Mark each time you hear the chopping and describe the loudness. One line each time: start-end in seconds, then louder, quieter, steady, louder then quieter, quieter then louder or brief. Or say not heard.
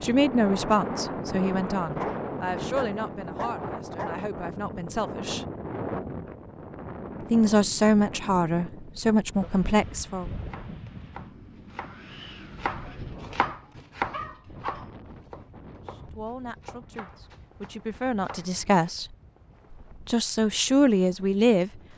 10.4-18.9 louder then quieter.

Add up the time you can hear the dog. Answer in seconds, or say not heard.
4 s.